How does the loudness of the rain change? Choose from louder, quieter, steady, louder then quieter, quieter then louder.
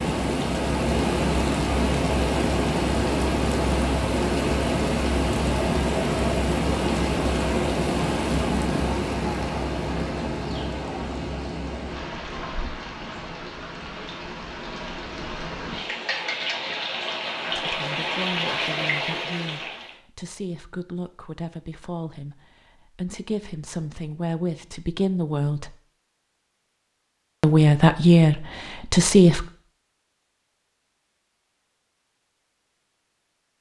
quieter then louder.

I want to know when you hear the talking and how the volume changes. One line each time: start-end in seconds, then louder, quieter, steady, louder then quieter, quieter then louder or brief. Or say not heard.
17.4-25.8 louder
27.4-29.4 brief.